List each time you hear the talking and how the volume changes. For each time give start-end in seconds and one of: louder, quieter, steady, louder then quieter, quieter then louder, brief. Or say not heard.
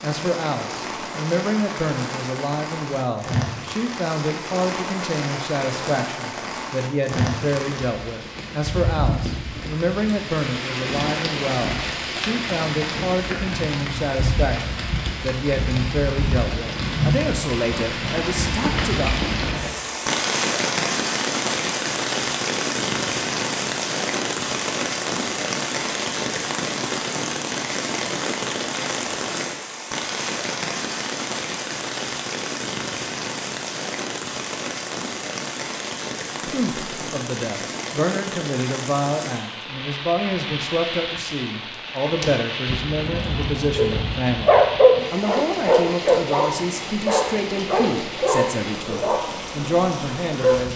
0.0-19.3 steady
36.5-50.7 steady.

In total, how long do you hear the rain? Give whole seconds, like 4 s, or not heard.
51 s.